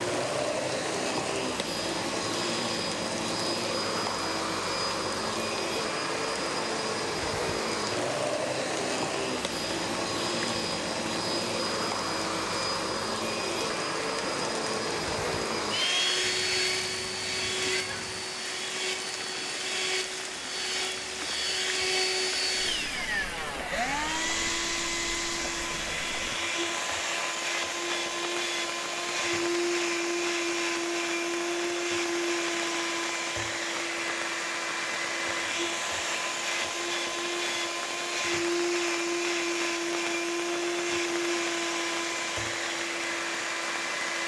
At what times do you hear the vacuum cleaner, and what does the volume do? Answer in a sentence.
The vacuum cleaner can be heard from 0.0 to 44.2 s, at a steady volume.